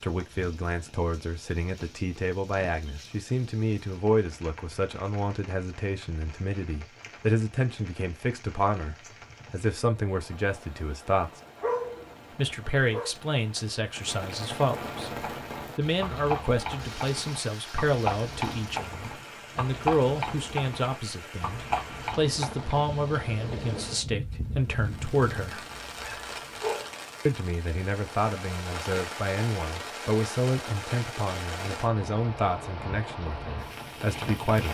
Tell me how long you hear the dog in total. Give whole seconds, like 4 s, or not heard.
3 s.